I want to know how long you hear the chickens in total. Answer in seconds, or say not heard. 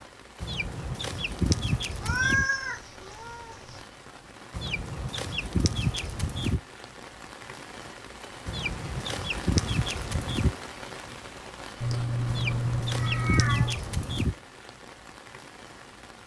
8 s.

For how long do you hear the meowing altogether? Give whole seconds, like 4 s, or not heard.
4 s.